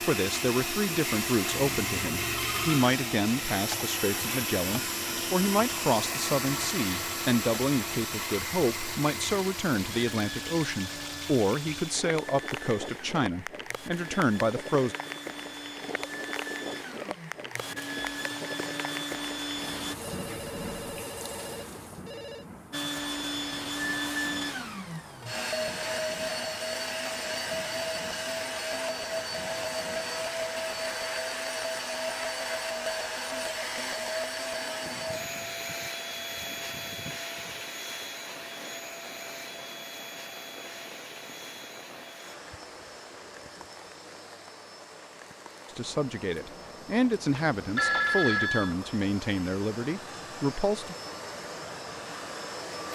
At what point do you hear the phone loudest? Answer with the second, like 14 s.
48 s.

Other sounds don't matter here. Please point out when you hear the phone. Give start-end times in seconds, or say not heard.
1.5-2.9, 20.0-22.4, 47.5-48.8.